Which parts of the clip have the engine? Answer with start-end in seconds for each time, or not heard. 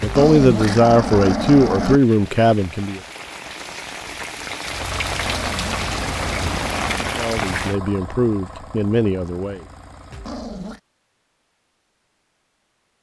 4.7-10.6.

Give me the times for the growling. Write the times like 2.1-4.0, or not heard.
0.0-2.0, 5.2-7.0, 10.1-10.8.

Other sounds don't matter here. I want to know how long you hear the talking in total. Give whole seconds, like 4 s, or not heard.
6 s.